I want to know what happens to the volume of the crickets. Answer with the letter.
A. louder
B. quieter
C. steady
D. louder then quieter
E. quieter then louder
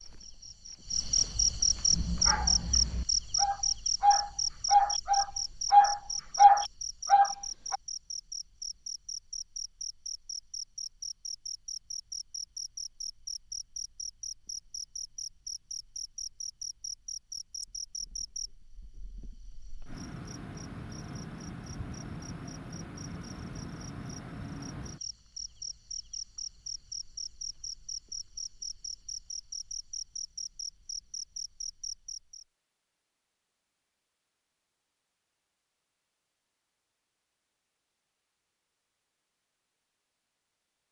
B.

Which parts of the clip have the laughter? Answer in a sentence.
You can't hear the laughter here.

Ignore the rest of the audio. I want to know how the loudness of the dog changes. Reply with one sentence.
The volume of the dog goes up.